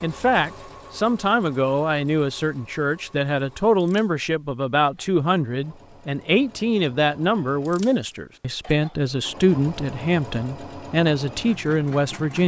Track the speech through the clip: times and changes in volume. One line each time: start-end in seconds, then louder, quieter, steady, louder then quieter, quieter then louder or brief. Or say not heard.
0.0-12.4 steady.